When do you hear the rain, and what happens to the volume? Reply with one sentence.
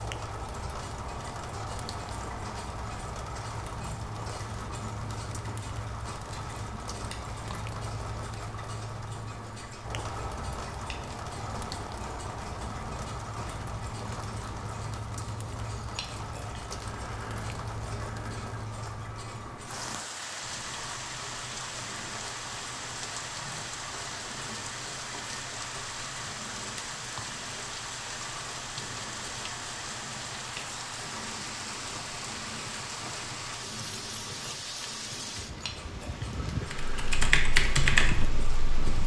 You can hear the rain from 0.0 to 39.0 s, at a steady volume.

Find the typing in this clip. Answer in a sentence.
You can hear the typing from 36.6 to 38.8 s.